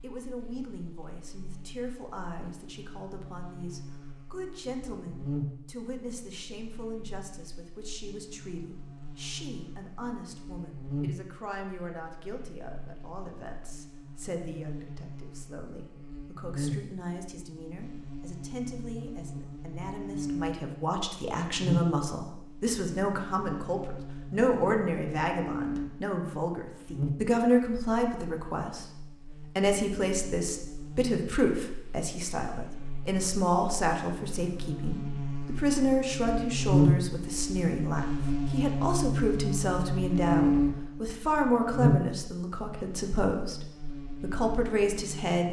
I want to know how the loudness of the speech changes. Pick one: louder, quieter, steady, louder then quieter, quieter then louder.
louder.